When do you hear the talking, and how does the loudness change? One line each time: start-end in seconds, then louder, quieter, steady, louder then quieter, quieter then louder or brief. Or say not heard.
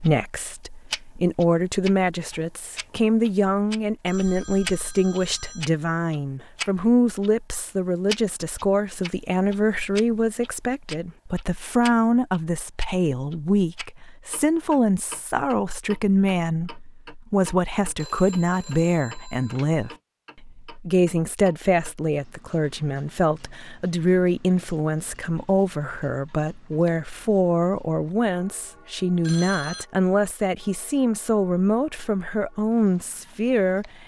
0.0-34.0 steady.